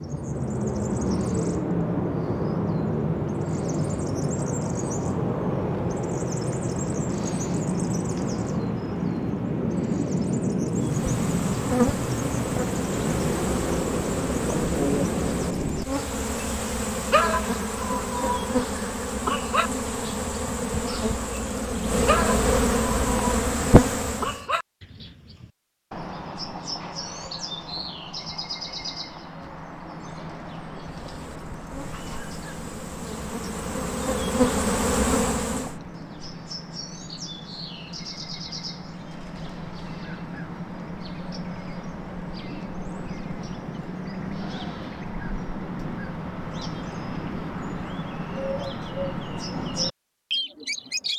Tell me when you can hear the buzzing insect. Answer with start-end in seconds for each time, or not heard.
10.7-24.4, 31.0-35.8.